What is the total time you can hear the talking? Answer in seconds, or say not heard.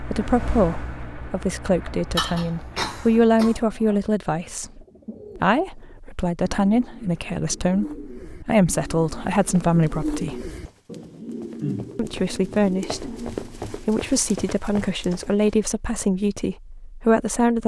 16 s.